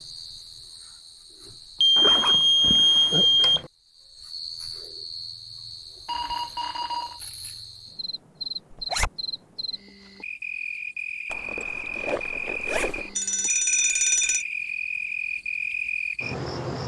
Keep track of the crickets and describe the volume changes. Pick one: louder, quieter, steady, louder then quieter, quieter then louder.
louder.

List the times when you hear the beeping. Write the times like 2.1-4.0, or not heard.
1.8-3.6, 6.0-7.2, 13.2-14.4.